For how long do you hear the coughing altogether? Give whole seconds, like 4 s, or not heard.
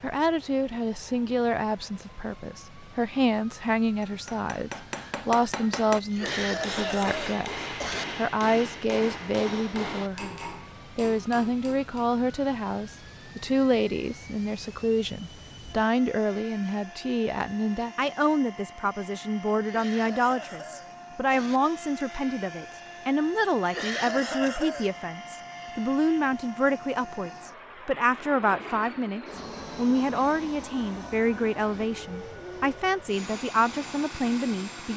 5 s.